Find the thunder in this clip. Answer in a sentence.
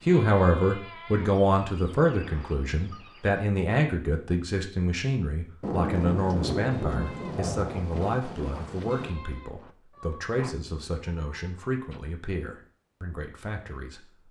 The thunder can be heard from 5.6 to 9.1 s.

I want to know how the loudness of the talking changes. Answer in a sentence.
The loudness of the talking goes down.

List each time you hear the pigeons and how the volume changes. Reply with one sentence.
The pigeons can't be heard in this clip.